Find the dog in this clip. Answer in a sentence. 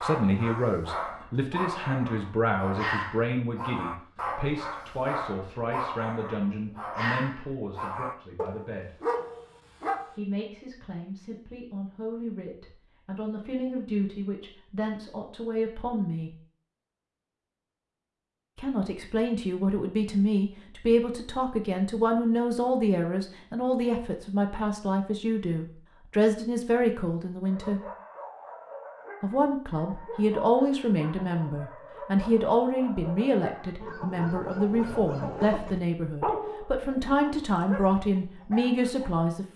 You can hear the dog from 0.0 to 10.2 s and from 27.4 to 39.1 s.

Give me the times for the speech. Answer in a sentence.
The speech can be heard from 0.0 to 8.9 s, from 10.2 to 16.4 s, from 18.6 to 27.8 s and from 29.2 to 39.5 s.